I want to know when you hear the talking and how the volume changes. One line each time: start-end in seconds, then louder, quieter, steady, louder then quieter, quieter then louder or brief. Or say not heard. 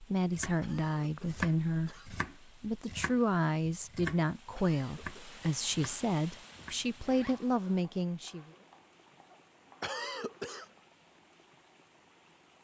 0.0-8.5 steady.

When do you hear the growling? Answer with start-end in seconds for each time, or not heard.
not heard.